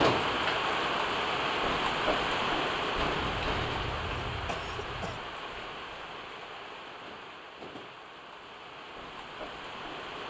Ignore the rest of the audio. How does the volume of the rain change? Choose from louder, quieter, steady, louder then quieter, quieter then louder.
quieter.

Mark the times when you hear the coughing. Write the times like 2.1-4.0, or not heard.
3.1-5.2.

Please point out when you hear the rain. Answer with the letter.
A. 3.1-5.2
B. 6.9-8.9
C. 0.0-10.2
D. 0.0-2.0
C.